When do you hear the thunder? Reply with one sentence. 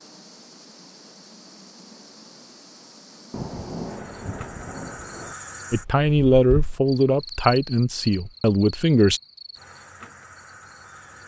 The thunder can be heard from 3.3 to 5.3 s.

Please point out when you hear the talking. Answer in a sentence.
You can hear the talking from 5.7 to 9.2 s.